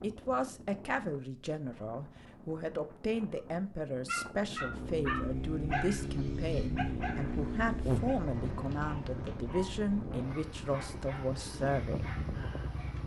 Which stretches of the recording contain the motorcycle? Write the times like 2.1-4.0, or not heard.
4.5-13.0.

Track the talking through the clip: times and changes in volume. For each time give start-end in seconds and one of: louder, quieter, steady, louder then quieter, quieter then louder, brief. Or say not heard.
0.0-12.1 steady.